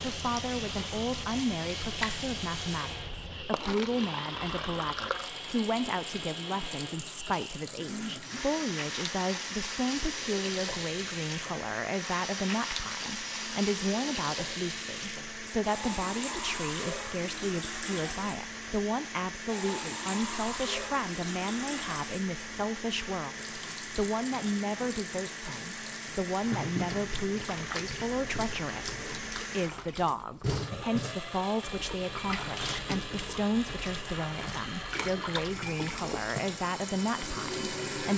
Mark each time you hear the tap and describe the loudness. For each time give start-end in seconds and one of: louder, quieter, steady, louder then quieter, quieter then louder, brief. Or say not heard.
0.0-38.1 steady.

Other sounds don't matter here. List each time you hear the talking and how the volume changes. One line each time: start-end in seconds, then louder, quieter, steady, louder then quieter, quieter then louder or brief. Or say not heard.
0.0-38.1 steady.